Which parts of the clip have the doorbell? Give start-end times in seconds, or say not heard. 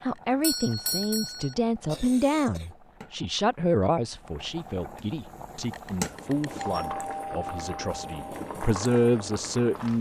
0.4-1.6, 6.5-8.3.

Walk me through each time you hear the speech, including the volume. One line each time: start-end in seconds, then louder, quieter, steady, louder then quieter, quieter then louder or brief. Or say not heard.
0.0-9.9 quieter then louder.